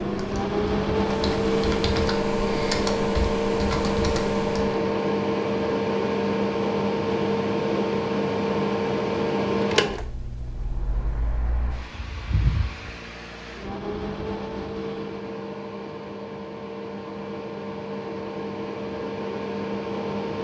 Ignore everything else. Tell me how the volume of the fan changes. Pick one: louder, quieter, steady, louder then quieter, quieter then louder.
quieter.